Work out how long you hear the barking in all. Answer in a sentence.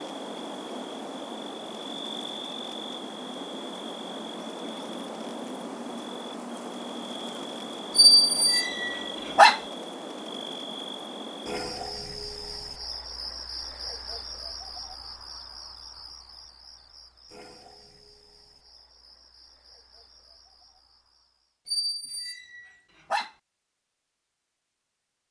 You can hear the barking for 3 seconds altogether.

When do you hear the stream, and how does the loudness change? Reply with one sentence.
The stream can't be heard in this clip.